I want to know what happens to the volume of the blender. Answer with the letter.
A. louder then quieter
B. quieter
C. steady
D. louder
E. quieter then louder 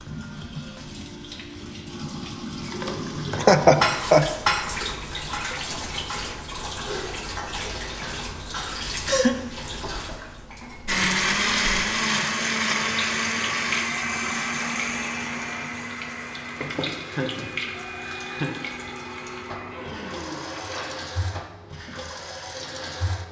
B.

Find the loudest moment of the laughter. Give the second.
4 s.